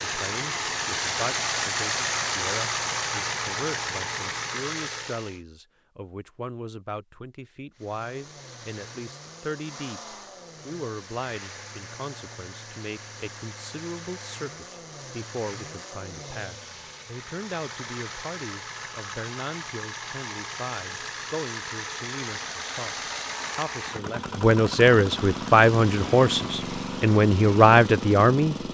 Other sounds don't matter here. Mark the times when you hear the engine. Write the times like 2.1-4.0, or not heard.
0.0-5.4, 7.8-28.7.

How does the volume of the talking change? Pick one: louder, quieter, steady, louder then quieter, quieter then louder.
louder.